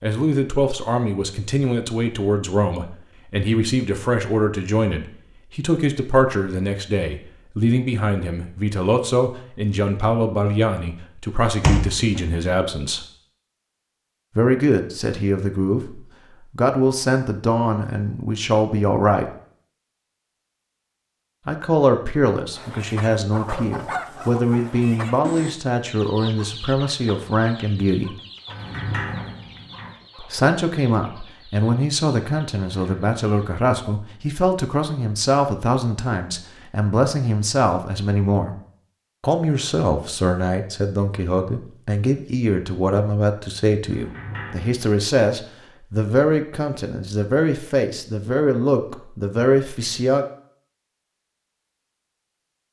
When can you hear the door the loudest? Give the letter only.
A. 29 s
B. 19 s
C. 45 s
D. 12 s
D.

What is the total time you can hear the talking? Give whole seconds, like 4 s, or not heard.
44 s.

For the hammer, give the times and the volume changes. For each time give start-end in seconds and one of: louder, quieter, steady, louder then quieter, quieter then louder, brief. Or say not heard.
not heard.